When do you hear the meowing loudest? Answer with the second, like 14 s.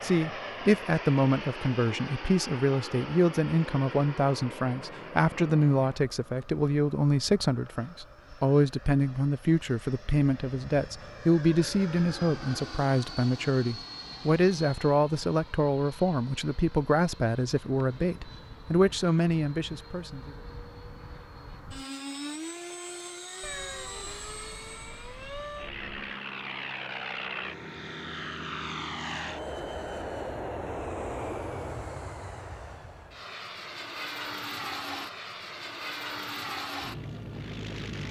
24 s.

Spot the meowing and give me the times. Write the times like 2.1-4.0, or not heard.
23.4-25.9.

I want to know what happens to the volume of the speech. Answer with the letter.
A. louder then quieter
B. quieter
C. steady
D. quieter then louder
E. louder
C.